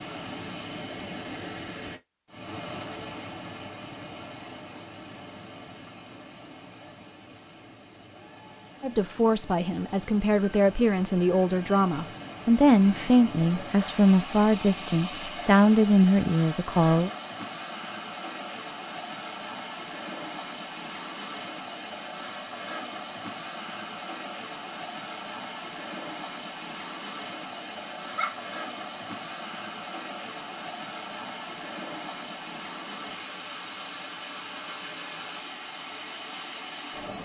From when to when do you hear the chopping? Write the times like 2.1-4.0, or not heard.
not heard.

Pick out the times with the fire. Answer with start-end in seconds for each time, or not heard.
not heard.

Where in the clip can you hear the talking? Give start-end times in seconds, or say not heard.
8.8-17.1.